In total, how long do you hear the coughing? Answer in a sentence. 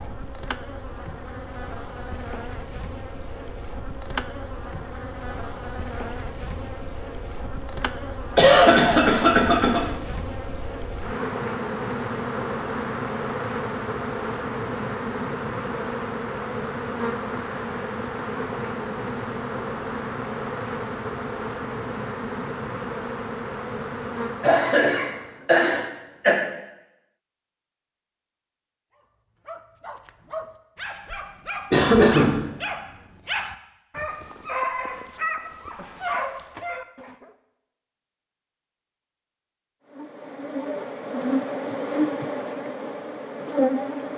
The coughing can be heard for 4 seconds in total.